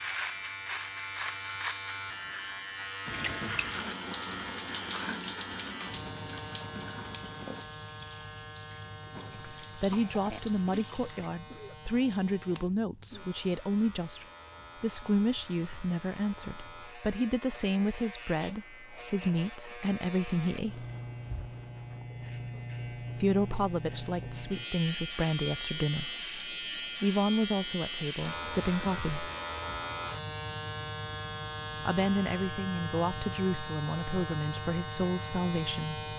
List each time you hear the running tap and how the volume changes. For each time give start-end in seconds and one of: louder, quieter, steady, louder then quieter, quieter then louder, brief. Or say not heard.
3.0-11.3 quieter.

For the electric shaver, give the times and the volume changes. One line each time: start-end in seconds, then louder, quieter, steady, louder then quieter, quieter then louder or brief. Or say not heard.
0.0-36.1 quieter then louder.